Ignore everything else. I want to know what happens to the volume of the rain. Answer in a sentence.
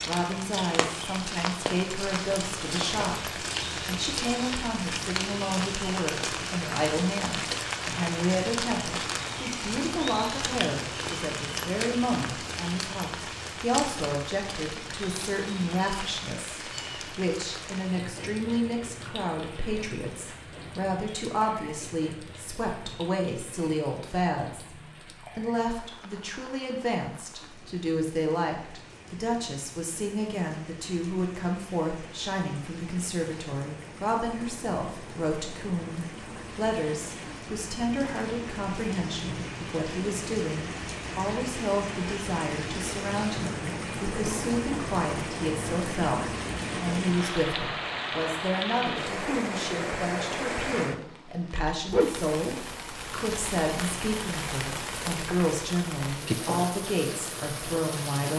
The volume of the rain goes down, then up.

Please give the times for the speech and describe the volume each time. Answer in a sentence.
You can hear the speech from 0.1 to 58.3 s, at a steady volume.